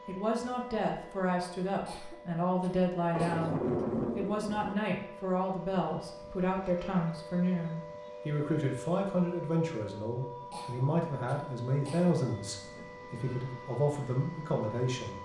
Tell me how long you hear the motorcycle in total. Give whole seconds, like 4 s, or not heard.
not heard.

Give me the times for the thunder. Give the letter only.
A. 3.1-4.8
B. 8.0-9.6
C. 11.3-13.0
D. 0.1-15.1
A.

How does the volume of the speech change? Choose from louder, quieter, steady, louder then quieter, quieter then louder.
steady.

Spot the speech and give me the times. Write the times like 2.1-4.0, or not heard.
0.1-15.1.